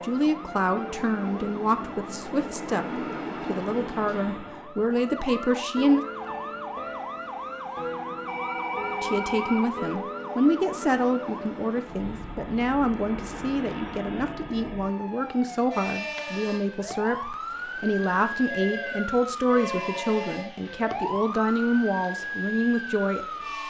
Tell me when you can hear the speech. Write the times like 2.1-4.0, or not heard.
0.0-6.0, 9.0-23.6.